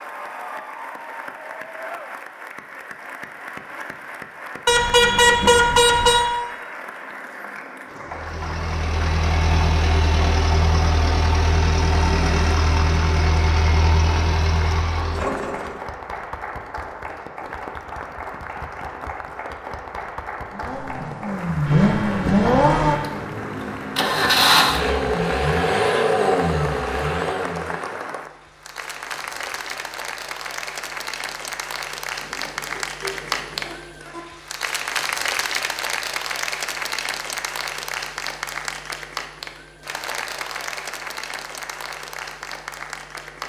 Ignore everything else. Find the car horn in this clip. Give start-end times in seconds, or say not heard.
4.7-6.2, 21.6-23.1, 32.2-34.2.